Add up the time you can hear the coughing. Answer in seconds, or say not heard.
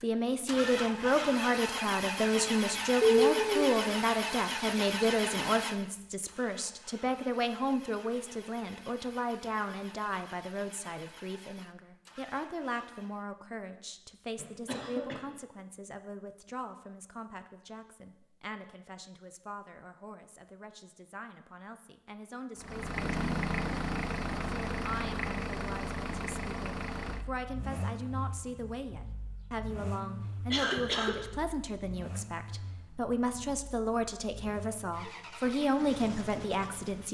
2 s.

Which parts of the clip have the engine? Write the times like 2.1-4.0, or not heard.
0.0-13.2, 22.6-37.0.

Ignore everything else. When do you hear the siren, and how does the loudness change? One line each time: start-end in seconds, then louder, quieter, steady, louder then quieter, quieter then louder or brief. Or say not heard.
not heard.